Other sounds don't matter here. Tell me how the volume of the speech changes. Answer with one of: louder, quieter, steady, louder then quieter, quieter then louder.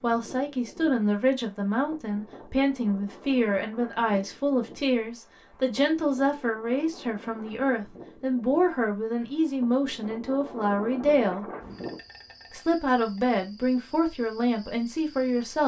steady.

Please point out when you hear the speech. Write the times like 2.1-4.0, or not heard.
0.0-11.4, 12.5-15.6.